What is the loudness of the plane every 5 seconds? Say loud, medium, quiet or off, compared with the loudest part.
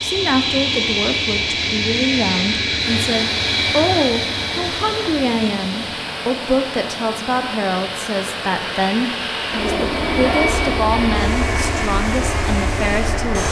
loud, medium, loud.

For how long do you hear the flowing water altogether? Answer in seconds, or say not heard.
11 s.